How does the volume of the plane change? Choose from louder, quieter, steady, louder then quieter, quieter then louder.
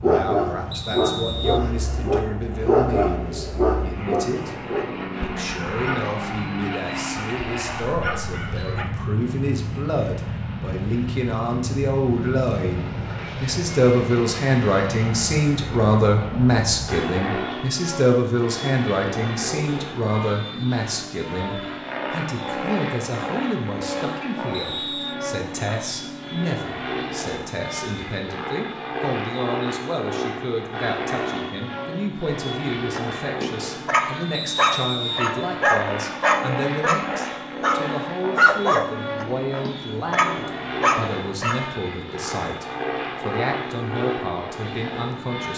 steady.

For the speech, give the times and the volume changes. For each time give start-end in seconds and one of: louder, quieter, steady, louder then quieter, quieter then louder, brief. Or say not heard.
0.0-45.5 louder then quieter.